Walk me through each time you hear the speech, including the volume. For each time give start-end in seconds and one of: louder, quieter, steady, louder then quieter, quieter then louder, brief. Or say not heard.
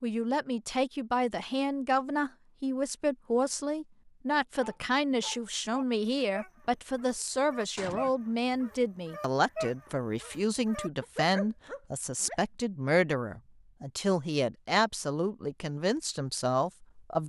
0.0-17.2 steady.